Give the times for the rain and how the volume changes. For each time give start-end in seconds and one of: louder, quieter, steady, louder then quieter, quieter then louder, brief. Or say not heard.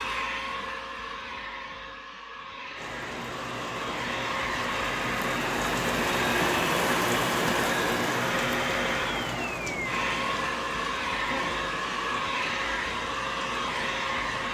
2.8-14.4 louder then quieter.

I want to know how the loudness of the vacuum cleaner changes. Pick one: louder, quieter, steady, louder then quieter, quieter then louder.
louder.